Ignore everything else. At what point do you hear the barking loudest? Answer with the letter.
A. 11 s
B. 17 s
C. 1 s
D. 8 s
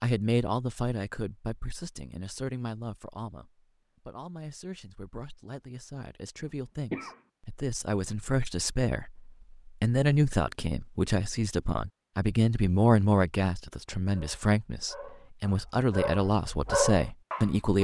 B.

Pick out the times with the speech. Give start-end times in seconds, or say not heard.
0.0-17.8.